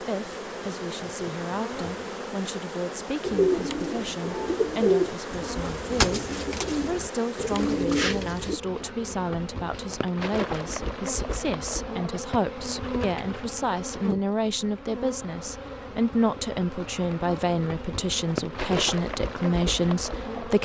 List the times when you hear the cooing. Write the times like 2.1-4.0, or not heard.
3.2-8.6.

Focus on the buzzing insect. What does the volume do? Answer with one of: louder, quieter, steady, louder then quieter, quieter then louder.
steady.